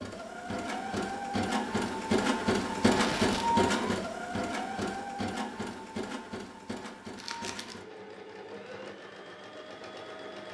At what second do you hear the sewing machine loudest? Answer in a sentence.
The volume of the sewing machine peaks at 3 seconds.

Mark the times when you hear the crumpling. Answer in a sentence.
You can hear the crumpling from 3.0 to 3.5 s and from 7.2 to 7.8 s.